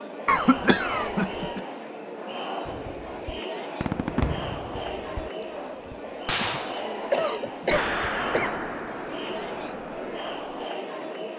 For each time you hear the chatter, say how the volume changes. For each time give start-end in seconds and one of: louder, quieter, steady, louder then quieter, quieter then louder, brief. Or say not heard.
0.0-11.3 steady.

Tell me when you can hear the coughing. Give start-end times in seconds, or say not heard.
0.2-1.6, 5.9-8.6.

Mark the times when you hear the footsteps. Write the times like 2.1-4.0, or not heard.
not heard.